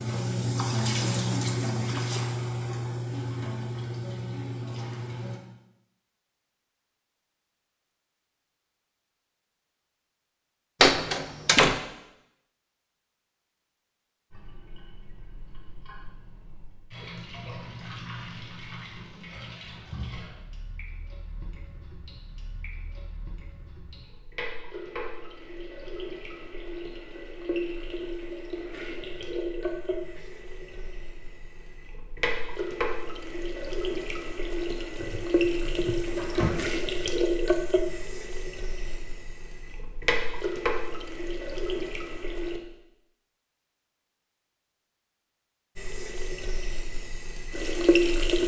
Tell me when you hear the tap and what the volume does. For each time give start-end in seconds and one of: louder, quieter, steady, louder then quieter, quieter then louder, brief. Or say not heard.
0.0-5.4 quieter
14.3-42.6 louder
45.8-48.4 brief.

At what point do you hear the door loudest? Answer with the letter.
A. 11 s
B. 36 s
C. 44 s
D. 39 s
A.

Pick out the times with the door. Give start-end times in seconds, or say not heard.
10.8-11.8, 35.0-36.6.